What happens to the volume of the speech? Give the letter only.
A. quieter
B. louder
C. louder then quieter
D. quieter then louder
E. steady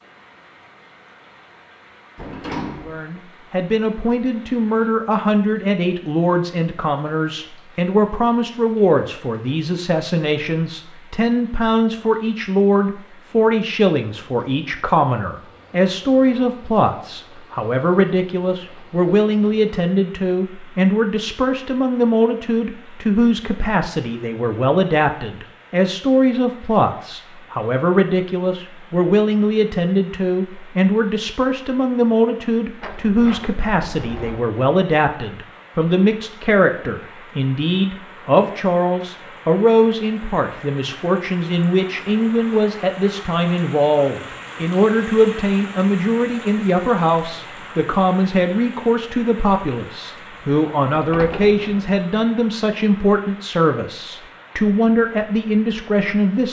E.